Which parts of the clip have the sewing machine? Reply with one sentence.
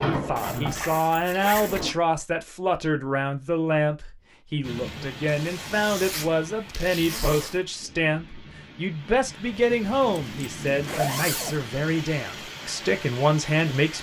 You can hear the sewing machine from 0.0 to 1.9 s.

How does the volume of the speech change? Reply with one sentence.
The volume of the speech stays about the same.